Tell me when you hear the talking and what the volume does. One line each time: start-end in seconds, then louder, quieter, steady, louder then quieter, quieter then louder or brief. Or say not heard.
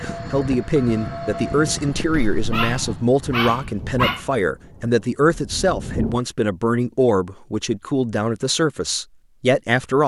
0.0-10.0 steady.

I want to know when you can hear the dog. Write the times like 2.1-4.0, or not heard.
1.9-4.2.